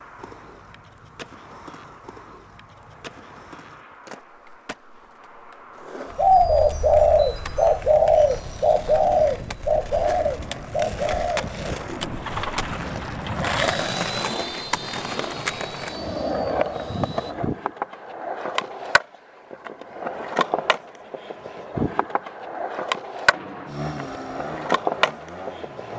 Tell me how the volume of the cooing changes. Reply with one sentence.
The loudness of the cooing goes down.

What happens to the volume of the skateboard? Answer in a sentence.
The loudness of the skateboard goes up.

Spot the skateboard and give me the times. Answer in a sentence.
You can hear the skateboard from 0.0 to 25.9 s.